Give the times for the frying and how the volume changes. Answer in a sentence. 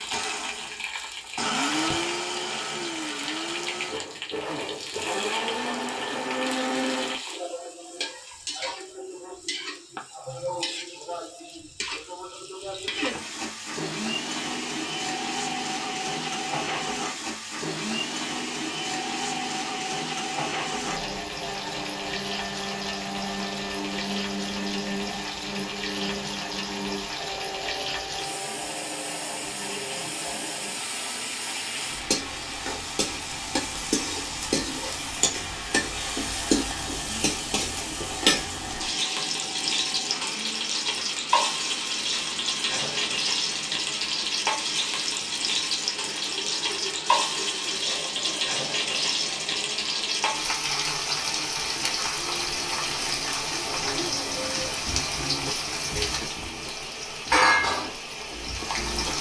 The frying can be heard from 0.0 to 59.1 s, getting louder.